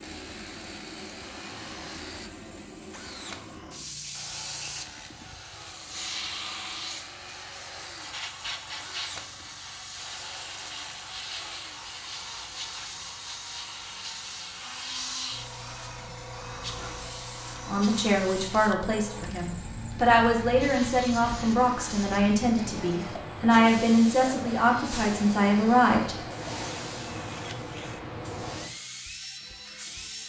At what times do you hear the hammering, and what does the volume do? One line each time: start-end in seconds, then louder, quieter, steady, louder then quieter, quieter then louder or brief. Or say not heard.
not heard.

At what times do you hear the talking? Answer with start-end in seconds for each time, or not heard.
17.6-26.1.